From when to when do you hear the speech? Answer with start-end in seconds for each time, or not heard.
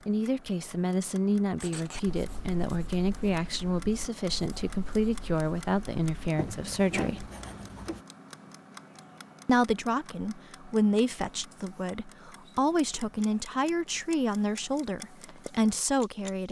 0.1-7.3, 9.4-16.4.